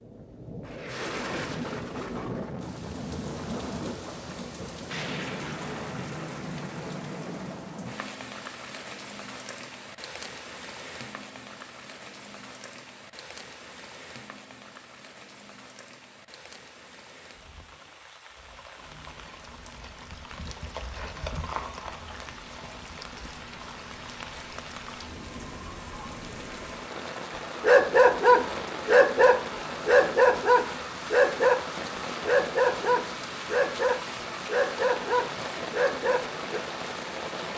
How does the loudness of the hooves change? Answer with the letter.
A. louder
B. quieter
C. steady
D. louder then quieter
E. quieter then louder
D.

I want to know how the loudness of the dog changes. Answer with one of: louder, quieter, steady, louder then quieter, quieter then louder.
quieter.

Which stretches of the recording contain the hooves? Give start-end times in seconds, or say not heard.
18.3-24.6.